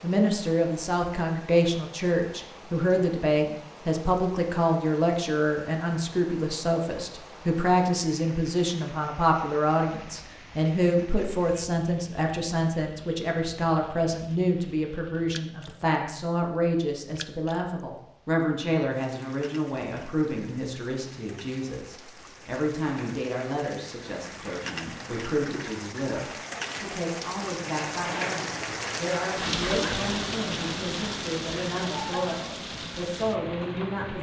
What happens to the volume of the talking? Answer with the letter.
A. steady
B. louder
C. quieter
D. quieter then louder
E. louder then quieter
C.